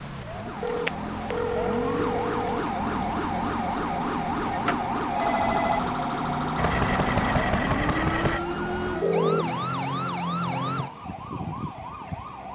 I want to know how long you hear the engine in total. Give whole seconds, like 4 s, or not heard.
2 s.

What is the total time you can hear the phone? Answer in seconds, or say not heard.
4 s.